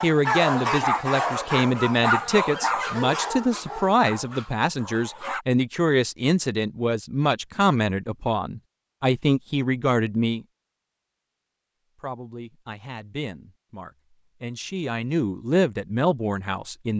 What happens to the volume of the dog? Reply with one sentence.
The loudness of the dog goes down.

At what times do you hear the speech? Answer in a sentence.
You can hear the speech from 0.0 to 10.4 s and from 11.9 to 16.9 s.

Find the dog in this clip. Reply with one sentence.
You can hear the dog from 0.0 to 5.5 s.